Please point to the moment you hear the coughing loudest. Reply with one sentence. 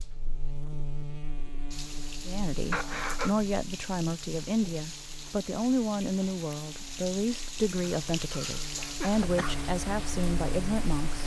The loudest moment of the coughing is at 3 seconds.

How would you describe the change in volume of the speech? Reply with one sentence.
The volume of the speech stays about the same.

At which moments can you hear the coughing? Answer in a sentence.
You can hear the coughing from 2.7 to 3.4 s and from 7.8 to 9.7 s.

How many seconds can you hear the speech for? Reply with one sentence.
The speech can be heard for 9 seconds in total.